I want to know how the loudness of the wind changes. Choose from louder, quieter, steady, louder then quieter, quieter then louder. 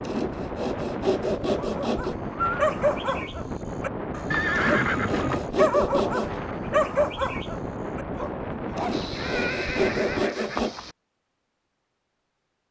steady.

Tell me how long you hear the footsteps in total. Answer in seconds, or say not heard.
not heard.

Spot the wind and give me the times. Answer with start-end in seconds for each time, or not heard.
0.0-10.2.